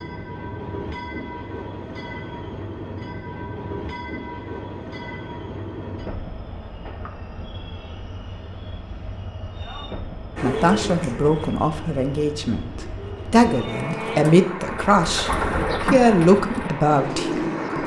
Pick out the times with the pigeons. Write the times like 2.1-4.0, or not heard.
10.3-17.8.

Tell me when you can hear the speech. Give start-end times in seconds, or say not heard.
10.4-17.8.